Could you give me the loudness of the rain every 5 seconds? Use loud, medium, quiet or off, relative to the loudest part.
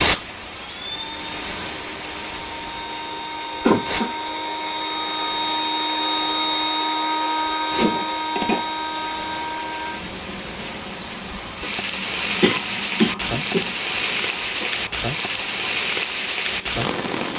medium, quiet, loud, loud.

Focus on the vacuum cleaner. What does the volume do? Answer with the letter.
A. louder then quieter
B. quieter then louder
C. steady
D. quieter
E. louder
A.